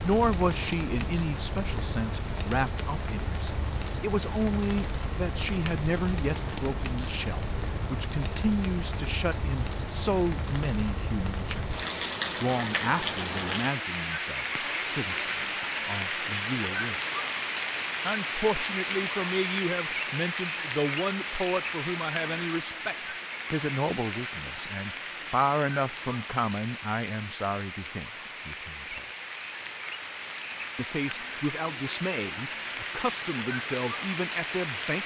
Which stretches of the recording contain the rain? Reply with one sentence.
The rain can be heard from 0.0 to 35.0 s.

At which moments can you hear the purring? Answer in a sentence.
The purring can't be heard in this clip.